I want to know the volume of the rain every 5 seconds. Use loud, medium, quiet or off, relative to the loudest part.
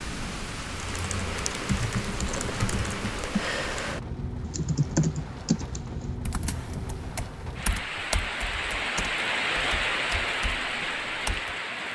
medium, loud, loud.